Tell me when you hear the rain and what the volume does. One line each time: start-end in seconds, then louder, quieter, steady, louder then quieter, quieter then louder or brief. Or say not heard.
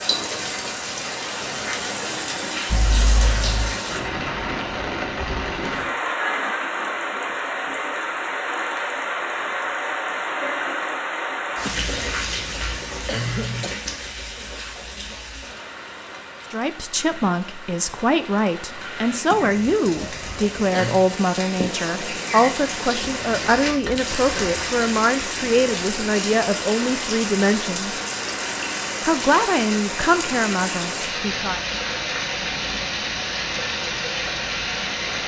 0.0-35.2 quieter then louder.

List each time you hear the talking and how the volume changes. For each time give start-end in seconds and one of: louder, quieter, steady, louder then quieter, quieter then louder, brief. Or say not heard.
16.5-28.0 steady
29.0-31.6 brief.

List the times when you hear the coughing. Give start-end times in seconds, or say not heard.
11.6-13.8, 19.2-21.1.